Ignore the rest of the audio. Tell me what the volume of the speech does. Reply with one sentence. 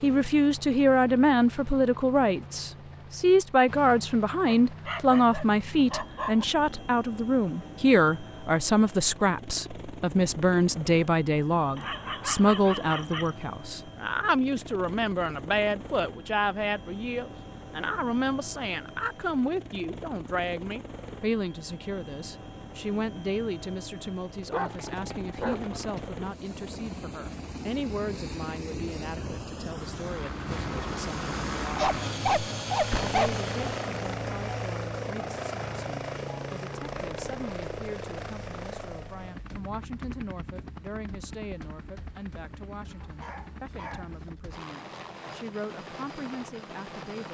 The loudness of the speech goes down.